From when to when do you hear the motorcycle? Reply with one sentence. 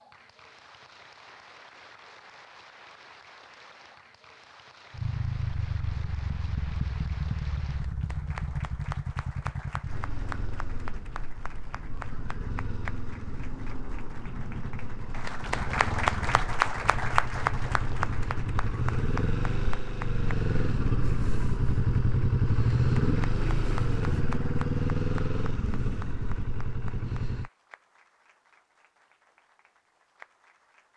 The motorcycle can be heard from 4.9 to 27.5 s.